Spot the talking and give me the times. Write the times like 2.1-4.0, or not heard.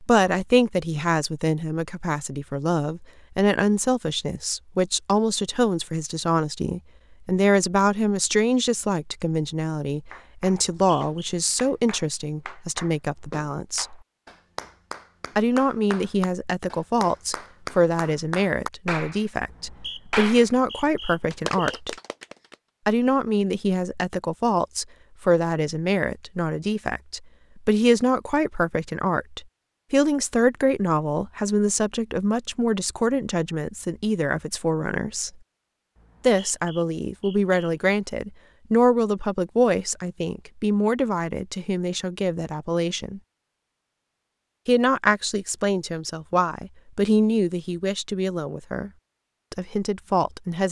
0.0-13.9, 15.3-21.9, 22.9-35.3, 36.2-43.2, 44.6-48.9, 49.5-50.6.